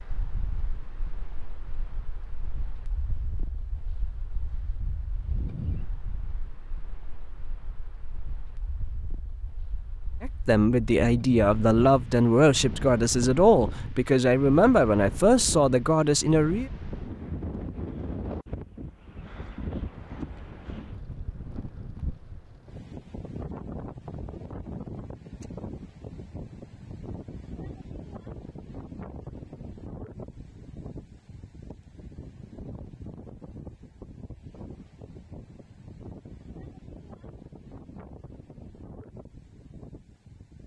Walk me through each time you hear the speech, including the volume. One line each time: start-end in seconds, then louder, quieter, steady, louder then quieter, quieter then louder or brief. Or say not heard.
10.2-16.7 steady.